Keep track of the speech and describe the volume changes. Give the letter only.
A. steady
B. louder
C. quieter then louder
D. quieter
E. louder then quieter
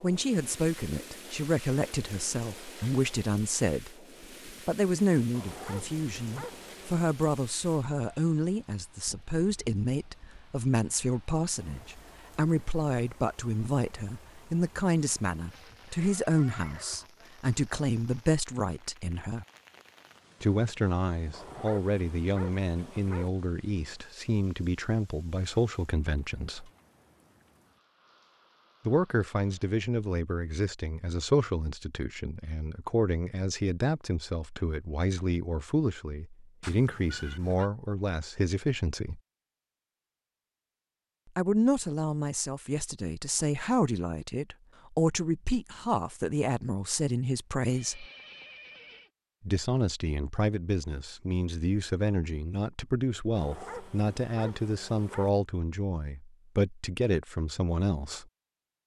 A.